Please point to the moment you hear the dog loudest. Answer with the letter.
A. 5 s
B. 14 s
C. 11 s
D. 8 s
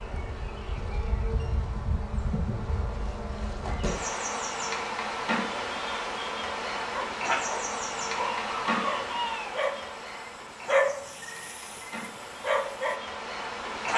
C.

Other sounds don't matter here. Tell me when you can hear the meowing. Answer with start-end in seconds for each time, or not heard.
not heard.